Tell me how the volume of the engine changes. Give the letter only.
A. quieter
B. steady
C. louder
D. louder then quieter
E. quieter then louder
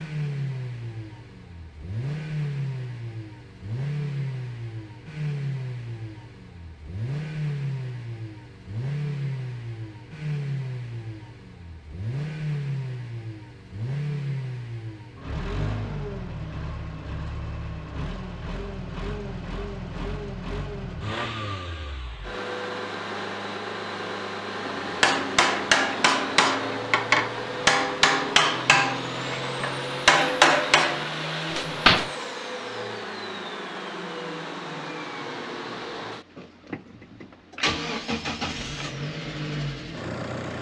B.